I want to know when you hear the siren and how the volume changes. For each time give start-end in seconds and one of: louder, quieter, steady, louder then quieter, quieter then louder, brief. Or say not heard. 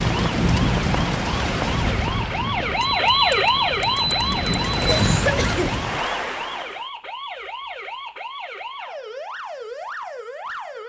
0.0-10.8 louder then quieter.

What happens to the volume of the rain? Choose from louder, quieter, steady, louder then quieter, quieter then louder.
quieter then louder.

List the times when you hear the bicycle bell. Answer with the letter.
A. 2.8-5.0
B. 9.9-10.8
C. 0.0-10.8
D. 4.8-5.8
A.